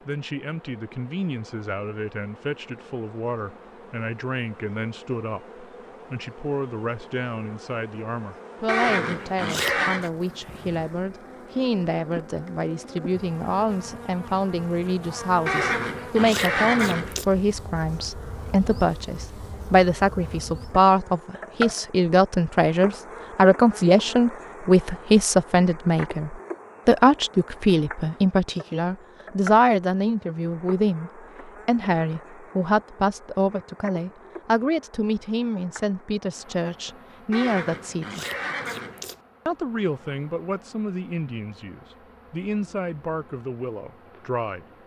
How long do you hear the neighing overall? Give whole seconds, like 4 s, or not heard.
5 s.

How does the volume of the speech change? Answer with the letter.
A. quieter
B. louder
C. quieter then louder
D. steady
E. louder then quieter
E.